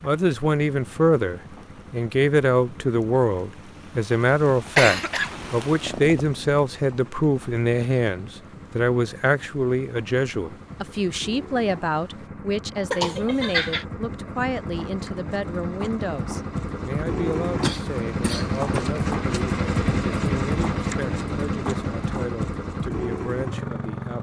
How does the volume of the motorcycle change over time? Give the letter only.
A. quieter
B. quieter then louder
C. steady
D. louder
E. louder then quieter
D.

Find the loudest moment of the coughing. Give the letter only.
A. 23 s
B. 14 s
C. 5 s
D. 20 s
C.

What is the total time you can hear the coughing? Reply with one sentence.
The coughing can be heard for 4 seconds in total.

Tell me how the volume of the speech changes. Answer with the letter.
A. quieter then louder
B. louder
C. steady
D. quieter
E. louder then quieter
D.